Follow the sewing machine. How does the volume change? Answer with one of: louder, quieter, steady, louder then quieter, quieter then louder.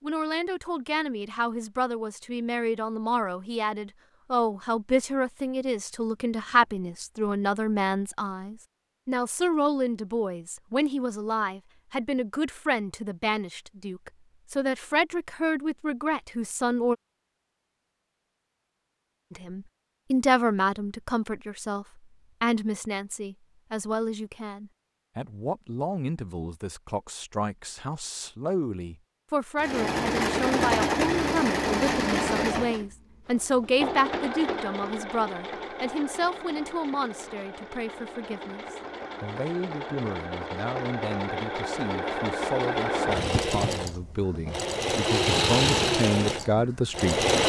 quieter then louder.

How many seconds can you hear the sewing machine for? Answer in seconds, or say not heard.
18 s.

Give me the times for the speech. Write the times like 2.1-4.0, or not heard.
0.0-16.9, 19.3-47.2.